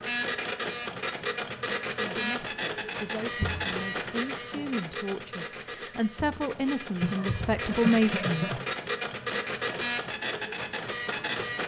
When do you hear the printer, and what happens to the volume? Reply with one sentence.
The printer can be heard from 0.0 to 11.6 s, getting quieter then louder.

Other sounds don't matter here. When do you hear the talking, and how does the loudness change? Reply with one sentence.
The talking can be heard from 1.9 to 8.6 s, getting louder.